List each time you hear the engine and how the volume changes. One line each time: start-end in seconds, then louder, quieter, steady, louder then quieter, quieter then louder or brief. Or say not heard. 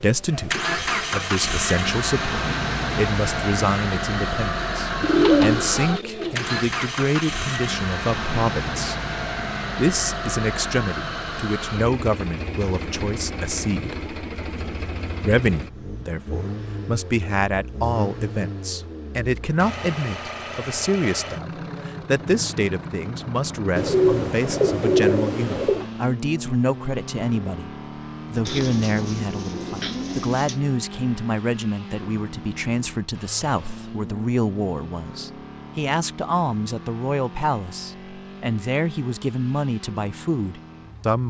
0.0-41.2 quieter.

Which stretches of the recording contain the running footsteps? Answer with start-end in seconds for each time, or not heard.
not heard.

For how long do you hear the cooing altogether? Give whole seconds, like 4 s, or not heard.
6 s.